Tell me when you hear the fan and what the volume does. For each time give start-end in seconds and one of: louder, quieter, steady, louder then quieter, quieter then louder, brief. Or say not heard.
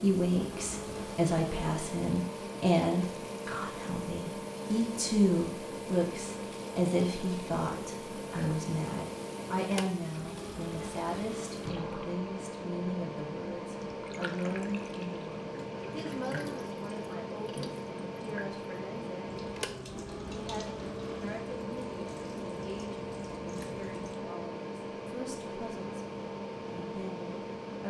0.0-27.8 steady.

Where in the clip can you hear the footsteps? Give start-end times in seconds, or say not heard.
not heard.